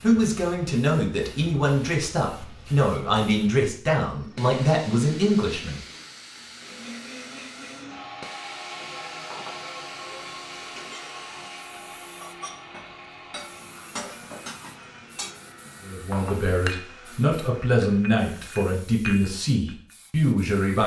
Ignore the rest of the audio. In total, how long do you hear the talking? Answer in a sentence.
The talking can be heard for 11 seconds in total.